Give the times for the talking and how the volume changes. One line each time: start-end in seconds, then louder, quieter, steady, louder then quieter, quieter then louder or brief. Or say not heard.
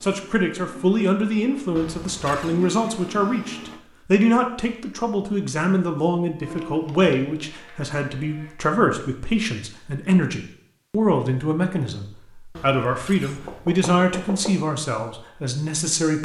0.0-16.2 steady.